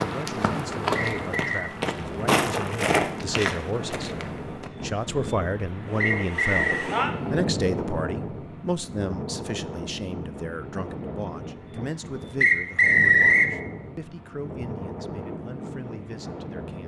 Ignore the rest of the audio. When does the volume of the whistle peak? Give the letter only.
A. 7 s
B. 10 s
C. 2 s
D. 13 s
D.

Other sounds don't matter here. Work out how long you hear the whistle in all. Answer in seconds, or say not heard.
3 s.